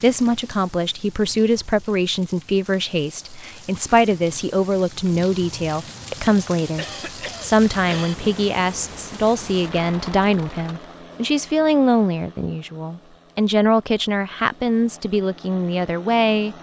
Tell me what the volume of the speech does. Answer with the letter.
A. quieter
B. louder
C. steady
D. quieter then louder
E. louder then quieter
C.